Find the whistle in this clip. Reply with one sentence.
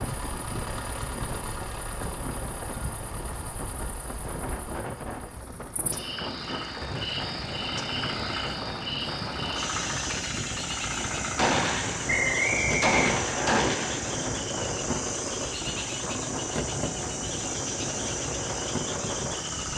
The whistle can be heard from 12.1 to 13.6 s.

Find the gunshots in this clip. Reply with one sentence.
You can hear the gunshots from 11.3 to 14.2 s.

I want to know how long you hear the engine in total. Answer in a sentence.
The engine can be heard for 20 seconds in total.